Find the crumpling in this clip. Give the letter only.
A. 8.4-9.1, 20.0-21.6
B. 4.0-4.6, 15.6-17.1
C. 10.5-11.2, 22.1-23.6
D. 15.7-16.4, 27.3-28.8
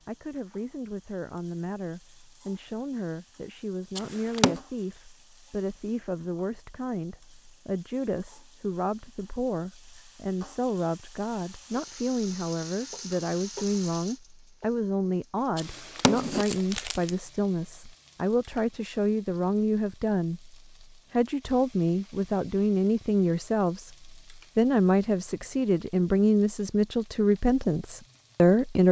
B.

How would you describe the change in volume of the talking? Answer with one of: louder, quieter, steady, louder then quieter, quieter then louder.
louder.